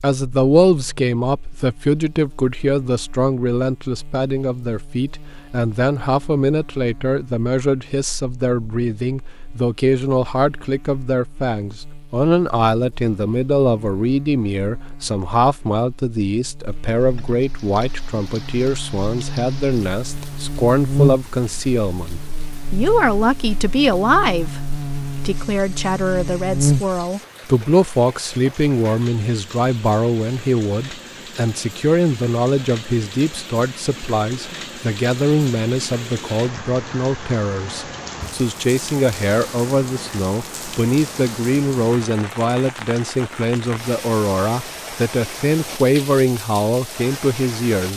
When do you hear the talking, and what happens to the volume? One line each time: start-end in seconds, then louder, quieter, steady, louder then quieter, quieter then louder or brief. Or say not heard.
0.0-47.9 steady.